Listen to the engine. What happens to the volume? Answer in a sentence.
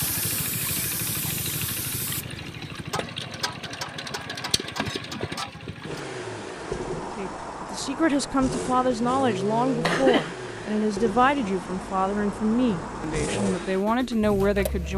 The loudness of the engine stays about the same.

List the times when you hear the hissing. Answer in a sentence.
The hissing can be heard from 0.0 to 2.8 s.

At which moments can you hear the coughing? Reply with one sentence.
The coughing can be heard from 9.8 to 10.8 s.